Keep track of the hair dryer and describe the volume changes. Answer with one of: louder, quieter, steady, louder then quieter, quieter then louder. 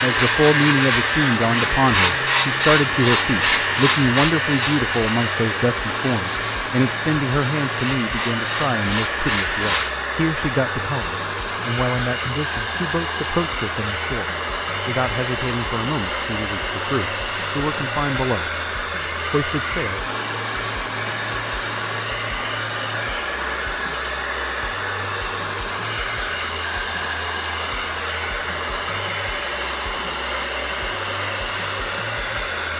steady.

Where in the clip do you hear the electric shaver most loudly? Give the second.
2 s.